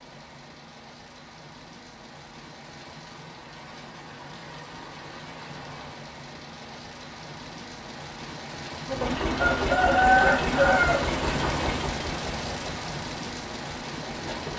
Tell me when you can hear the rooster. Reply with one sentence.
The rooster can be heard from 9.3 to 11.1 s.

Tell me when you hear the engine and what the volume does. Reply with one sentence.
The engine can be heard from 8.8 to 14.5 s, getting quieter.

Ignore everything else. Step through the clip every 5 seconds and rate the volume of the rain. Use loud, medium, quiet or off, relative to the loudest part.
medium, medium, loud.